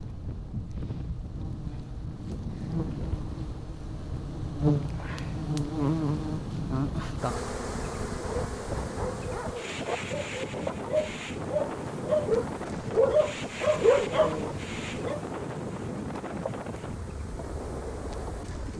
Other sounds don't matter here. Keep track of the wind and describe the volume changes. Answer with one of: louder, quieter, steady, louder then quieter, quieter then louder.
steady.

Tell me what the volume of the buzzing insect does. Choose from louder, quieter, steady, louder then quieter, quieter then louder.
louder then quieter.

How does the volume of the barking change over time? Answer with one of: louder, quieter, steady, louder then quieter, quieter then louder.
louder.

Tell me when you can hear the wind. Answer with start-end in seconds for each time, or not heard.
0.0-18.7.